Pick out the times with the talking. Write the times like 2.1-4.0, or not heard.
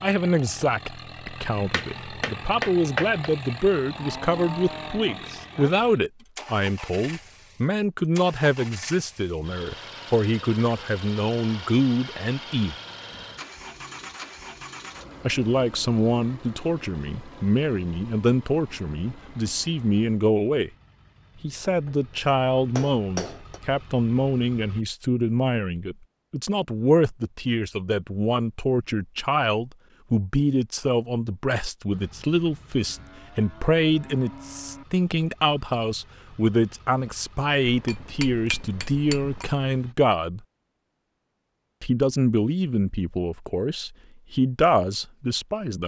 0.0-12.8, 15.2-20.7, 21.4-40.4, 41.8-45.8.